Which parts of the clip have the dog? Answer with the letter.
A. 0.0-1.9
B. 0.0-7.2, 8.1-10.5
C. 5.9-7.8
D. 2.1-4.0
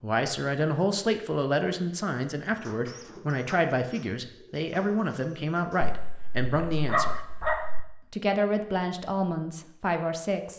C.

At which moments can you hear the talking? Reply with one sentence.
You can hear the talking from 0.0 to 7.2 s and from 8.1 to 10.5 s.